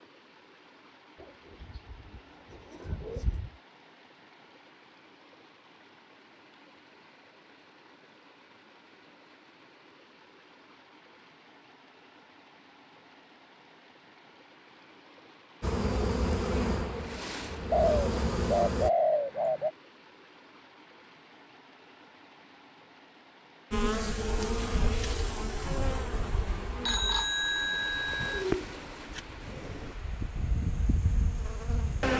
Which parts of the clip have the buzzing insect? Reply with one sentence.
You can hear the buzzing insect from 15.6 to 18.9 s and from 23.7 to 32.1 s.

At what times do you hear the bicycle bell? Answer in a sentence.
The bicycle bell can be heard from 26.8 to 28.4 s.